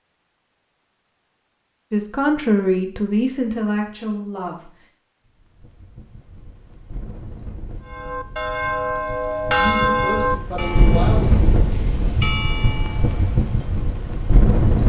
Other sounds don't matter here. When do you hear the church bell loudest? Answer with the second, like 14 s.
10 s.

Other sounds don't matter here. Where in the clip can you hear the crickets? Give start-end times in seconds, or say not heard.
not heard.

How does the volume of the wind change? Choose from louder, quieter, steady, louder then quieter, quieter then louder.
louder.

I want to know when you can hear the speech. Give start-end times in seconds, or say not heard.
1.9-4.8, 9.6-11.3.